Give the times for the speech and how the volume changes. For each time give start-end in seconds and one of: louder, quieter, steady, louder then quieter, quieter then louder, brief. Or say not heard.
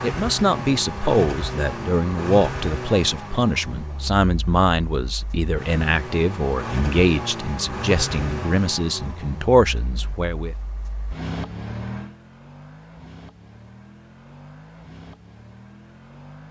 0.0-10.6 steady.